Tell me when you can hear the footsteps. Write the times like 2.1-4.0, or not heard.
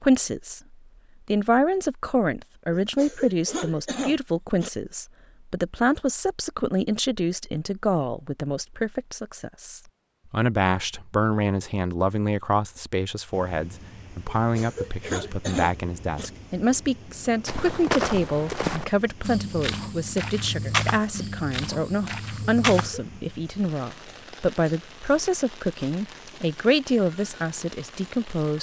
17.4-22.9.